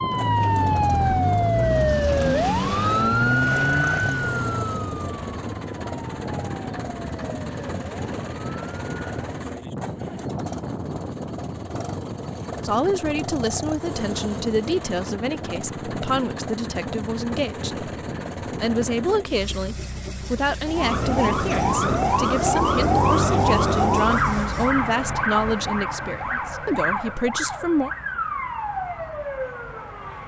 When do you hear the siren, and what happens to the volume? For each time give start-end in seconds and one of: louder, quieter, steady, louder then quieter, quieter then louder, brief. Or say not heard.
0.0-9.4 quieter
20.6-30.2 quieter.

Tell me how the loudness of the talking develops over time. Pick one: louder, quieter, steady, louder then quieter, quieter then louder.
steady.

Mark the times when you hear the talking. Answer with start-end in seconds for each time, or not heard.
12.6-27.9.